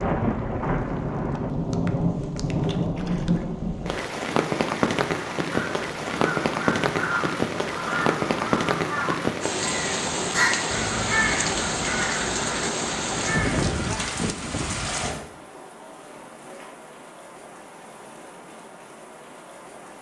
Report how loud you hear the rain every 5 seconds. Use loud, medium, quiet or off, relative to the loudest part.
loud, loud, loud, quiet.